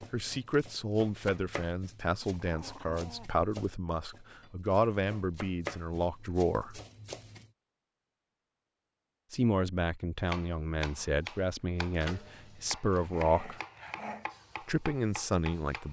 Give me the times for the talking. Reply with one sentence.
The talking can be heard from 0.1 to 6.8 s, from 9.3 to 13.6 s and from 14.7 to 15.8 s.